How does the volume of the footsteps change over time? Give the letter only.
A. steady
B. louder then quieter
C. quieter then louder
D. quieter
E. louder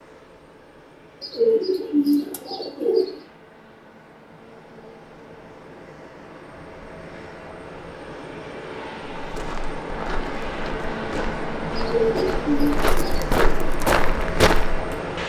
E.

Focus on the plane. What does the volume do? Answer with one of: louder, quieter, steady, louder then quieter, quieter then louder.
louder.